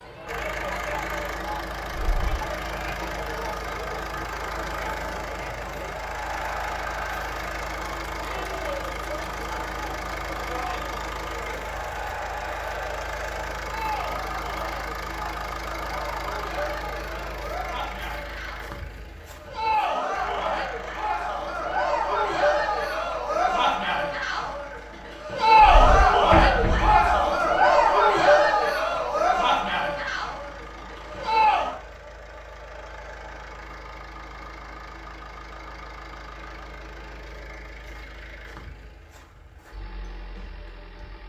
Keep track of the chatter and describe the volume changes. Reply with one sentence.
The volume of the chatter goes up.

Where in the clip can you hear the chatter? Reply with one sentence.
The chatter can be heard from 0.0 to 31.8 s.